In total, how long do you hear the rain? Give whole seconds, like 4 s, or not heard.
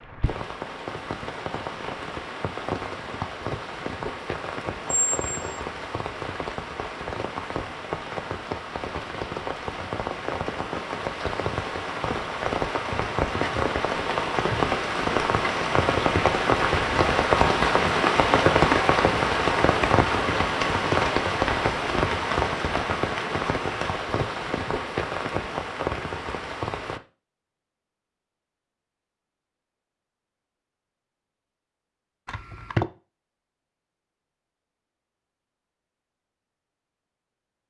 27 s.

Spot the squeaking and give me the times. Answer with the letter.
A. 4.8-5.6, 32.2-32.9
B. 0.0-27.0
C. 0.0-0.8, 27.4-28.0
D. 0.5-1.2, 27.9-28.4
A.